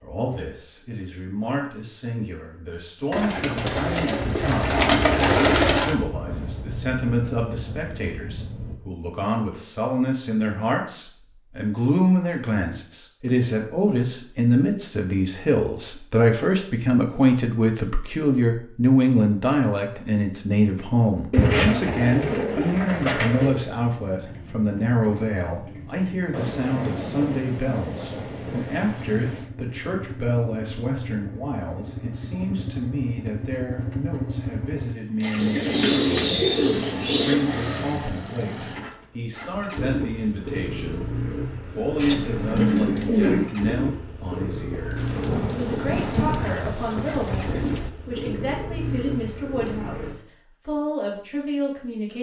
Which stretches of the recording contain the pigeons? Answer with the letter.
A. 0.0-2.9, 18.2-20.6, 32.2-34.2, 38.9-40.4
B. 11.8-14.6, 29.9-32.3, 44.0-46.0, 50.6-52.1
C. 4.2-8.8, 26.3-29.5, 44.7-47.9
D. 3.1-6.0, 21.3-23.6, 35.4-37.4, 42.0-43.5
D.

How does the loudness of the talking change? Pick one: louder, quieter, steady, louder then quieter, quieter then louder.
louder then quieter.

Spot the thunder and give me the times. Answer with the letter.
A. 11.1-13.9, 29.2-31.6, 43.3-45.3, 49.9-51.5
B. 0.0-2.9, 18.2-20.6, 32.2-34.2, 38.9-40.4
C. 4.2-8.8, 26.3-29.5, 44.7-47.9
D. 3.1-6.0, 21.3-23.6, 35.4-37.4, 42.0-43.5
C.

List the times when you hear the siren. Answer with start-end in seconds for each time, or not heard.
not heard.